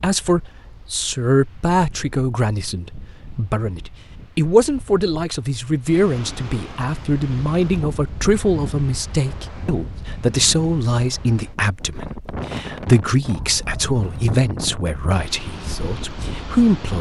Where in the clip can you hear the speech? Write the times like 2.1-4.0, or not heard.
0.0-16.9.